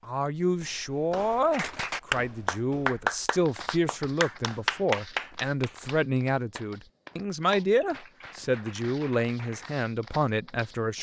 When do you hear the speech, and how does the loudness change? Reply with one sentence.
The speech can be heard from 0.1 to 10.9 s, at a steady volume.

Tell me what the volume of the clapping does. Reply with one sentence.
The volume of the clapping goes down.